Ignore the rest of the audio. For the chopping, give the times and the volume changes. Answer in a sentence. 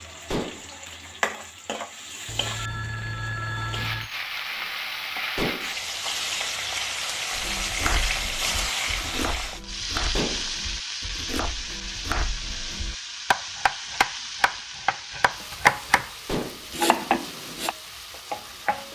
You can hear the chopping from 7.3 to 17.8 s, getting louder.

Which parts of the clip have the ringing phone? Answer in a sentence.
The ringing phone can be heard from 2.2 to 4.1 s.